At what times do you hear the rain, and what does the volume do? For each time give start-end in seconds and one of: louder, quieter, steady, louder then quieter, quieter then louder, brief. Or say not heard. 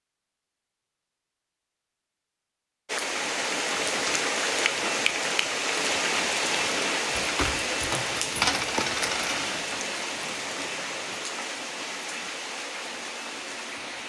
2.9-14.0 quieter.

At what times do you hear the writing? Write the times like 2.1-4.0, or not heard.
not heard.